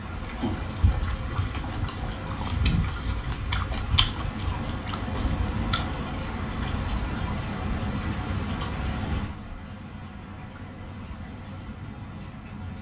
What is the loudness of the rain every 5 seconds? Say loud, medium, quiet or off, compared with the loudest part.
loud, loud, medium.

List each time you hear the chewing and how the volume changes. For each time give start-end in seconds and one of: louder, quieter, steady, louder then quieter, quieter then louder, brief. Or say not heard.
0.2-5.8 louder then quieter.